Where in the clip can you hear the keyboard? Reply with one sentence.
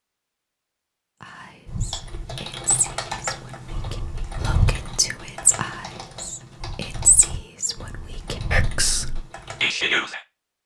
You can hear the keyboard from 1.6 to 9.7 s.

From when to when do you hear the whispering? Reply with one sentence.
The whispering can be heard from 1.2 to 10.2 s.